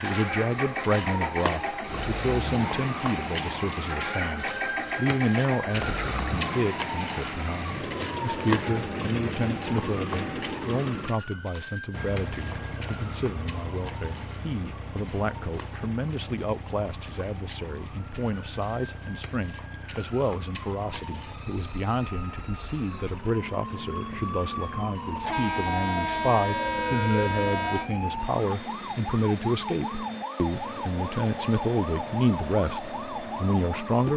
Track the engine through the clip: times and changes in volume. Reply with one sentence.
You can hear the engine from 0.0 to 34.1 s, getting quieter.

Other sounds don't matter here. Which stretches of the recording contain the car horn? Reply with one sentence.
The car horn can be heard from 25.2 to 27.9 s.